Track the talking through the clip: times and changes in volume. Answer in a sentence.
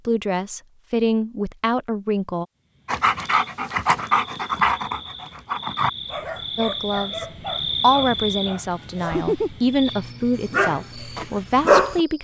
You can hear the talking briefly from 0.1 to 2.5 s; and from 6.5 to 12.1 s, at a steady volume.